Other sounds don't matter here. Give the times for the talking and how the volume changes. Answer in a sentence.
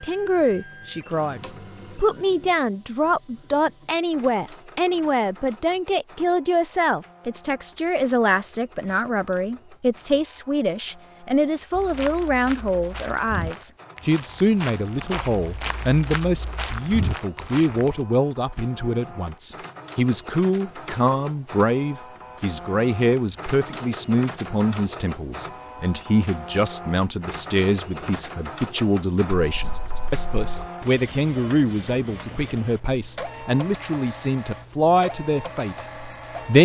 You can hear the talking from 0.0 to 36.5 s, at a steady volume.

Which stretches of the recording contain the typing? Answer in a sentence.
The typing can't be heard in this clip.